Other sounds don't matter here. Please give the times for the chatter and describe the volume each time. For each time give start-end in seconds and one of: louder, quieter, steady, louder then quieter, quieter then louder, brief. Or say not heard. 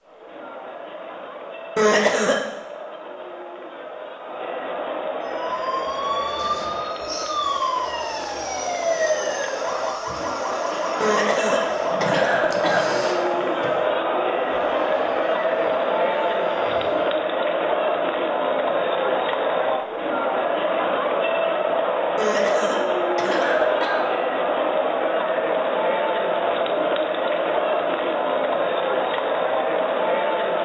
0.0-30.6 louder.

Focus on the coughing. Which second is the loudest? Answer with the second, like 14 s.
2 s.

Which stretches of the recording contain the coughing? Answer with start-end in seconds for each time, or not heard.
1.8-2.4, 11.0-12.9, 22.1-24.1.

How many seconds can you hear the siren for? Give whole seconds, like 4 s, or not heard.
12 s.